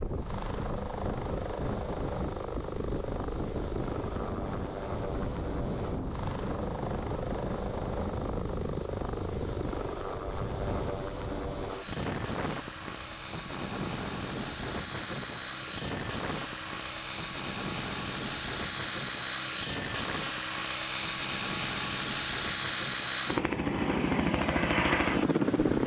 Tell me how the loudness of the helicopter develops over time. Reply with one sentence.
The volume of the helicopter goes up.